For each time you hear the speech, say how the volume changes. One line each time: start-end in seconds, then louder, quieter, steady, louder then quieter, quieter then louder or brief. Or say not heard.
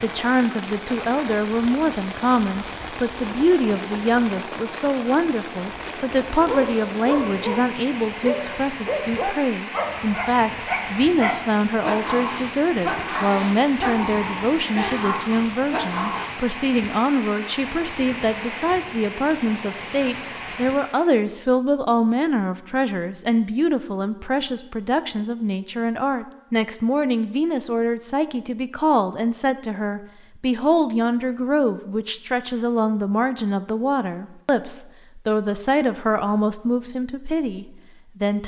0.0-38.4 steady.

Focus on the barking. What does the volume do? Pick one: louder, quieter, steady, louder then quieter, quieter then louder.
steady.